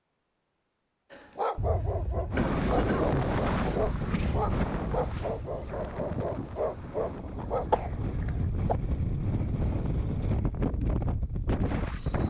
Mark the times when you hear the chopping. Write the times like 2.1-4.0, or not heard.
not heard.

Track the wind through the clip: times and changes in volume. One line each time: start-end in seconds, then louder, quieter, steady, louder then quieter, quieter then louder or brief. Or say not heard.
2.3-12.2 quieter then louder.